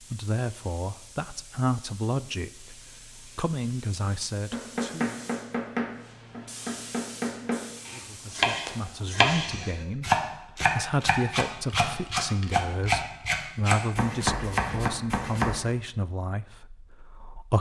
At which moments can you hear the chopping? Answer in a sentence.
You can hear the chopping from 4.5 to 15.6 s.